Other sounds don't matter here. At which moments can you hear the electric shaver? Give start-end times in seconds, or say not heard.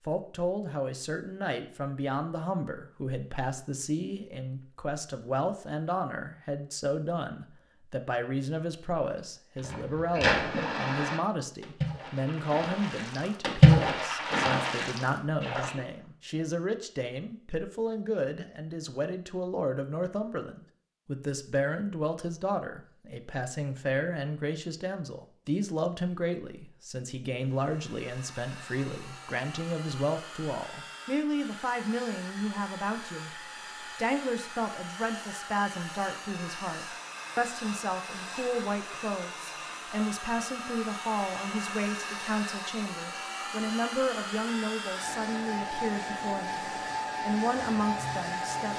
not heard.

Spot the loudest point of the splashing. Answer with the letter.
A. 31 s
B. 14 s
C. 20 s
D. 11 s
B.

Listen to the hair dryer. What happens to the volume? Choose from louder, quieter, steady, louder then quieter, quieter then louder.
louder.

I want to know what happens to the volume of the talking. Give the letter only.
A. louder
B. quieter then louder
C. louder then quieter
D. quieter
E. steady
E.